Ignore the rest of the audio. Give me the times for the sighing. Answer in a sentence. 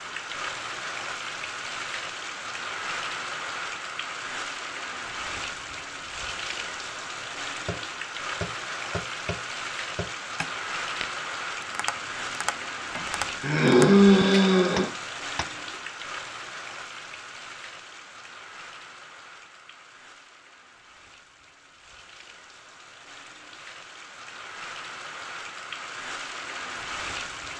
The sighing can be heard from 12.9 to 14.9 s.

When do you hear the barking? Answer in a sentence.
You can't hear the barking here.